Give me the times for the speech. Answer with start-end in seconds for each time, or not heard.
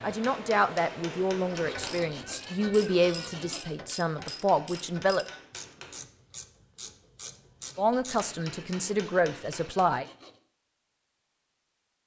0.0-5.2, 7.8-10.1.